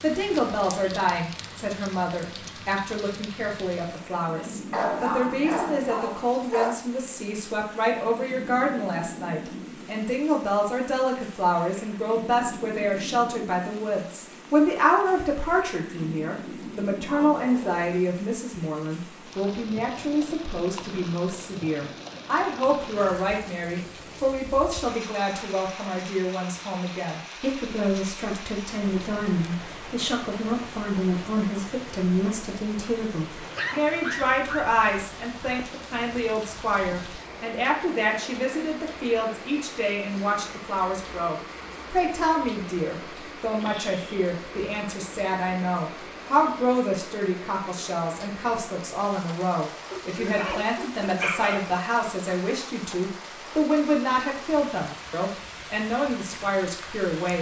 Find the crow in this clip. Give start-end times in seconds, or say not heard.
not heard.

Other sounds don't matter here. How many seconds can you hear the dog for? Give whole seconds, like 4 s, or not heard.
6 s.